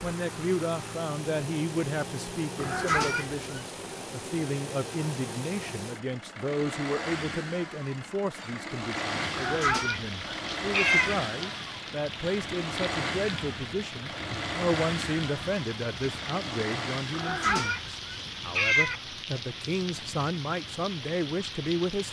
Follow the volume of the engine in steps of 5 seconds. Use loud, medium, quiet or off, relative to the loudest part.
loud, loud, loud, loud, off.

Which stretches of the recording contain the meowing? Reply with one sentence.
The meowing can be heard from 2.5 to 3.4 s, from 9.3 to 11.2 s and from 17.1 to 19.0 s.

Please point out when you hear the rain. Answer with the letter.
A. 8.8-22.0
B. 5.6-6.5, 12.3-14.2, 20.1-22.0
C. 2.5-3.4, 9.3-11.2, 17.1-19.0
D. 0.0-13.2
A.